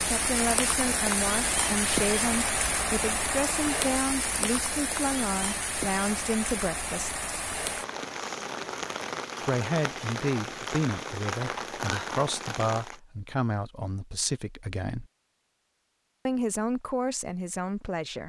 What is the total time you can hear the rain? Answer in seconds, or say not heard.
13 s.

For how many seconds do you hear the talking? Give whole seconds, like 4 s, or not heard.
15 s.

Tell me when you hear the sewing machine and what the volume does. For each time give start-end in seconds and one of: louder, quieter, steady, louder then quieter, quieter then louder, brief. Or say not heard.
not heard.